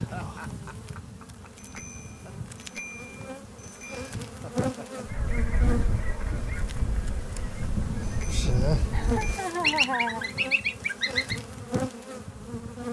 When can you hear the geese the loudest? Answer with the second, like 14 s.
10 s.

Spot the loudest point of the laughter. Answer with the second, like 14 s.
10 s.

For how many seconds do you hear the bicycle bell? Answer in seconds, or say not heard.
4 s.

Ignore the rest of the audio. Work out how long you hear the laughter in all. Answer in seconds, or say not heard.
4 s.